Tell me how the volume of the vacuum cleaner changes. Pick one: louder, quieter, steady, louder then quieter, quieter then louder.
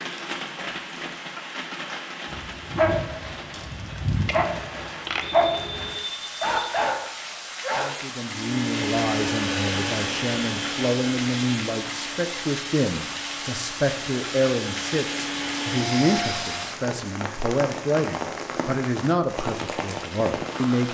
quieter then louder.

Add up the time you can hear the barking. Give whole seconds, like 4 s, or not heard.
6 s.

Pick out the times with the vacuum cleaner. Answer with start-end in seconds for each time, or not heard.
8.2-16.7.